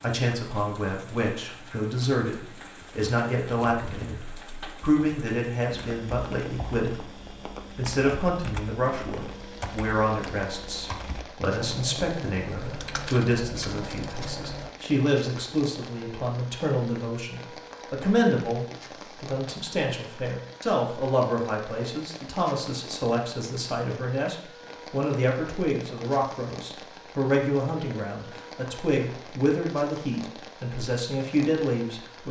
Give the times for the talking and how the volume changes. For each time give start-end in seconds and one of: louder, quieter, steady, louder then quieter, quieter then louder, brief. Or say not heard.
0.0-32.2 steady.